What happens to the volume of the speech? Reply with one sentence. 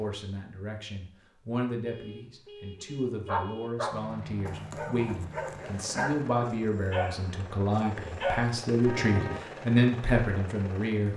The loudness of the speech goes up.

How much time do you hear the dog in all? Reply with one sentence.
The dog can be heard for 6 seconds in total.